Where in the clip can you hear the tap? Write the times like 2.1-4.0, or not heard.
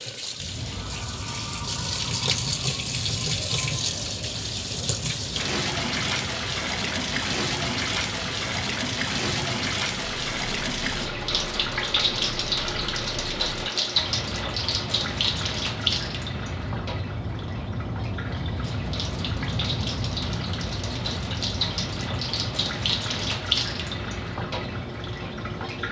0.0-25.8.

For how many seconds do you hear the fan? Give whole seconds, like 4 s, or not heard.
26 s.